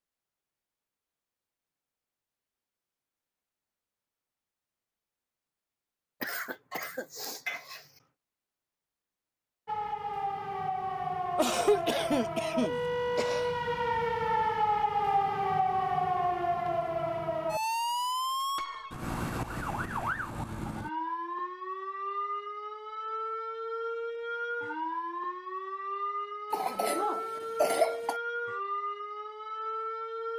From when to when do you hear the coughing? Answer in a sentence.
The coughing can be heard from 6.2 to 7.8 s, from 11.3 to 13.5 s and from 26.5 to 28.2 s.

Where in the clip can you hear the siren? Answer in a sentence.
You can hear the siren from 9.7 to 30.3 s.